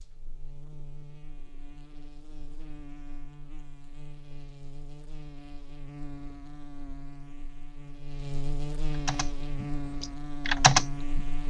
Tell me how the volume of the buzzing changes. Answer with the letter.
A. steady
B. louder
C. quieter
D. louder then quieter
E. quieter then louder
B.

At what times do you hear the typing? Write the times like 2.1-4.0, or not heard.
9.1-11.2.